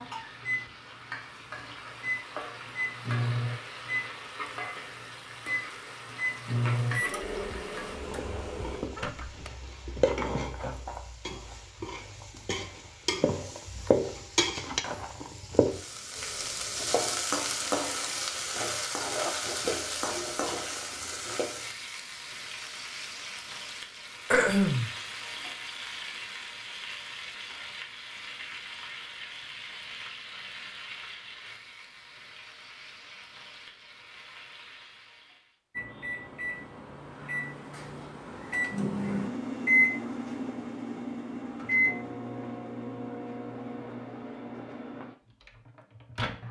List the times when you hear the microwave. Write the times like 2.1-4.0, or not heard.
0.4-9.5, 35.8-46.4.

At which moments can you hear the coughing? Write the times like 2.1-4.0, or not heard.
0.1-0.5, 24.3-24.9.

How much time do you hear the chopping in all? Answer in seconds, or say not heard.
not heard.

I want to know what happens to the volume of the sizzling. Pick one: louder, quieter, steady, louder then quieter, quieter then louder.
louder then quieter.